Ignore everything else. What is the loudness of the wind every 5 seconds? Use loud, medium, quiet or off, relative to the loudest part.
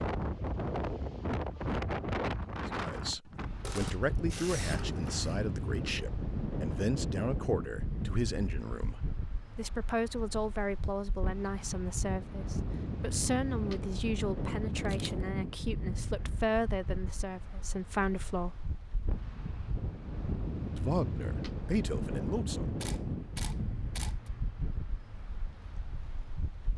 loud, loud, loud, medium, loud, quiet.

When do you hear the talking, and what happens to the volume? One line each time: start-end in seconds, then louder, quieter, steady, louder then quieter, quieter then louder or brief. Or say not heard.
2.6-18.6 steady
20.8-22.6 brief.